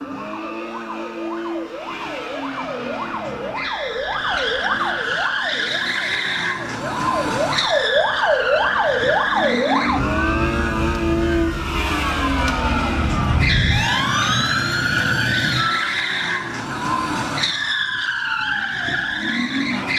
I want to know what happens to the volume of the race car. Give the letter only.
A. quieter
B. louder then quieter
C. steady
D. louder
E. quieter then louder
D.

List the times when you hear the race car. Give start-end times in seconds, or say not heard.
0.0-19.9.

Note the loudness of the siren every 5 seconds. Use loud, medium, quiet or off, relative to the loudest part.
medium, loud, loud, medium.